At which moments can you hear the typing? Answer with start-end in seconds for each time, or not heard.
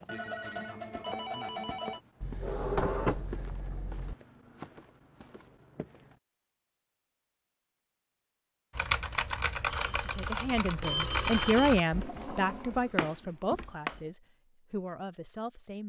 8.8-14.2.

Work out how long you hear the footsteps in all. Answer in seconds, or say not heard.
6 s.